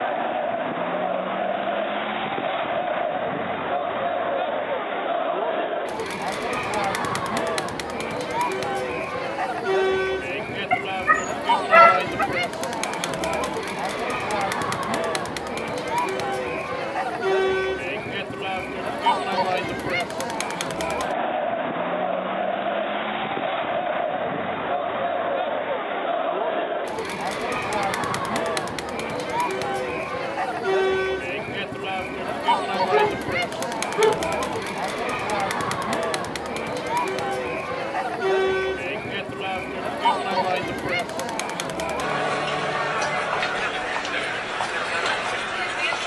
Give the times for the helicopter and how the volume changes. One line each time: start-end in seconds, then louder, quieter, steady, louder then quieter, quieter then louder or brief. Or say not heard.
not heard.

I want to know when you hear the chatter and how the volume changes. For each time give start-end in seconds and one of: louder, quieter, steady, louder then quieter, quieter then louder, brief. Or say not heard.
0.0-46.0 steady.